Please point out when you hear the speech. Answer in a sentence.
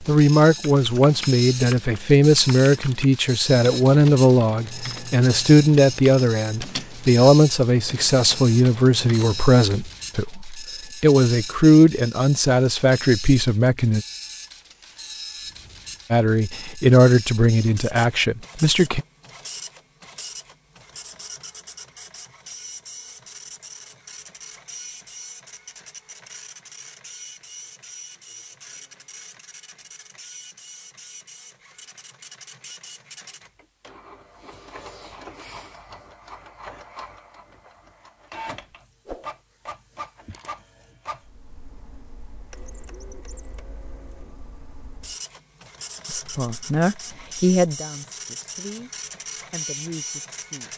The speech can be heard from 0.0 to 14.1 s, from 16.1 to 19.1 s and from 46.1 to 50.7 s.